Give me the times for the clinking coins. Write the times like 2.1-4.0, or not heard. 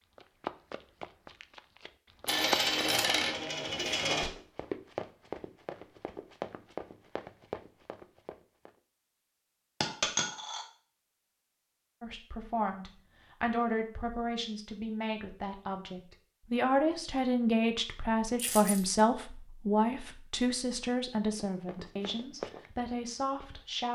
2.2-4.3, 9.8-10.7, 18.4-19.0.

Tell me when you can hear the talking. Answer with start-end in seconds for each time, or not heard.
12.0-23.9.